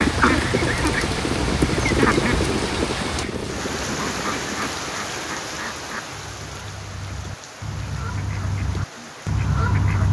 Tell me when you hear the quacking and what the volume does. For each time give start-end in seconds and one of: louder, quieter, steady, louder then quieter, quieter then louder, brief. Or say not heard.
0.0-10.0 quieter then louder.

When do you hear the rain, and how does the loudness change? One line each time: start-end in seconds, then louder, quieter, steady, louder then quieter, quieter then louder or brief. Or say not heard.
0.0-10.0 quieter.